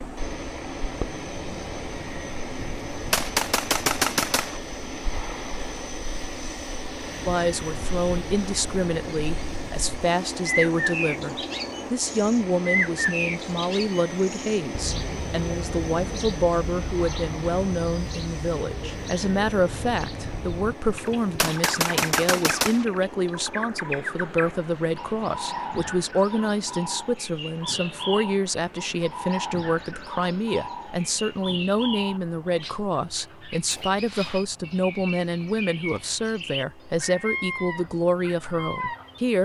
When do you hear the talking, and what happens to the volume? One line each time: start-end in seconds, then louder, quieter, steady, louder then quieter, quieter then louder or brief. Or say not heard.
7.2-39.3 steady.